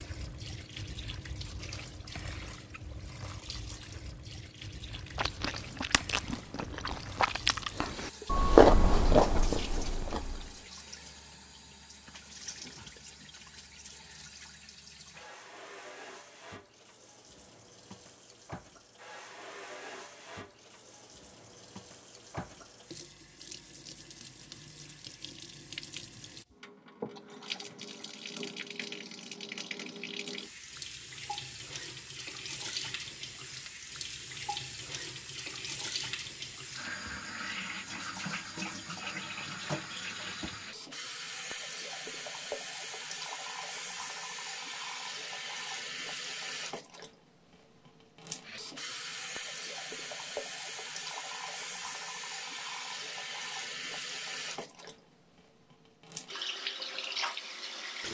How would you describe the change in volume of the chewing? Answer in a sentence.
The loudness of the chewing goes up, then down.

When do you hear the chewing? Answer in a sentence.
The chewing can be heard from 5.0 to 10.6 s.